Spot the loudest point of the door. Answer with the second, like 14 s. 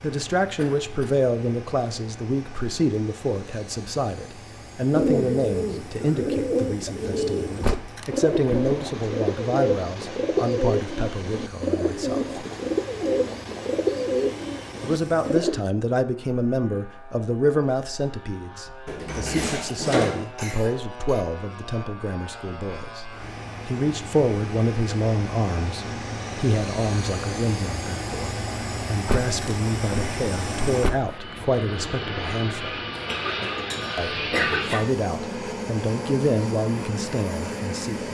20 s.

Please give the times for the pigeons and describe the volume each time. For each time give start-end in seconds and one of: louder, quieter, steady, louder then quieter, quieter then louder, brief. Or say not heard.
4.9-15.7 steady.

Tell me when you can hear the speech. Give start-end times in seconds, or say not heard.
0.0-12.4, 14.8-23.1, 23.6-32.8, 34.0-38.1.